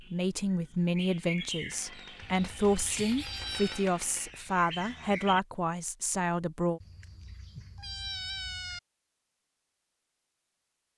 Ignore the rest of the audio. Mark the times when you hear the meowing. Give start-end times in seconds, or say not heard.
2.2-3.9, 6.8-8.8.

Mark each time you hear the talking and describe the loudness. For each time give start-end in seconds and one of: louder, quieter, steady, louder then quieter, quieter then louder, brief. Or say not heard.
0.0-6.8 steady.